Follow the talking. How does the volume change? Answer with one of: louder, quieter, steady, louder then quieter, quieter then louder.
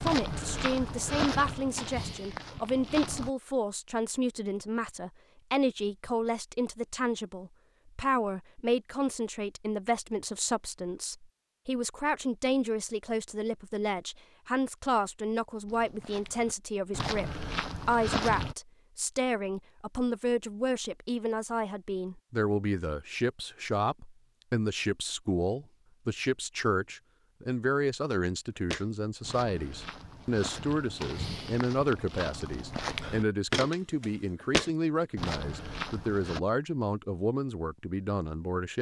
steady.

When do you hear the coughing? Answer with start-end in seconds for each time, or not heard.
not heard.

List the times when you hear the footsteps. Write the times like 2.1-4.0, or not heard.
0.0-3.3, 15.7-18.6, 28.6-36.4.